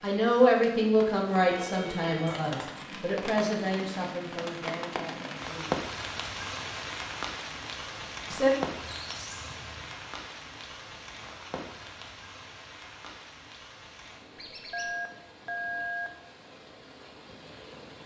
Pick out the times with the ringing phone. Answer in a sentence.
The ringing phone can be heard from 1.4 to 2.5 s and from 14.7 to 16.1 s.